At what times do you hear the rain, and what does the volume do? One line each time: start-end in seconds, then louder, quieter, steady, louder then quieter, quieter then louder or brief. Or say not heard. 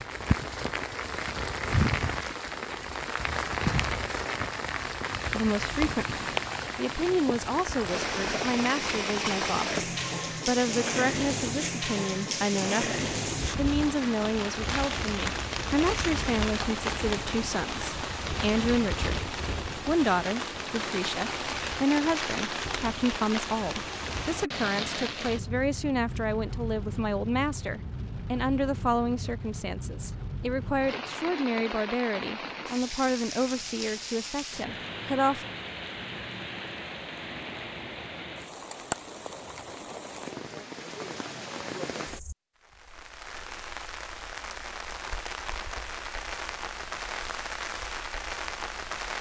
0.0-49.1 quieter.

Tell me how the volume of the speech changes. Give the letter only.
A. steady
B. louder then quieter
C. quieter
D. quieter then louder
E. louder
A.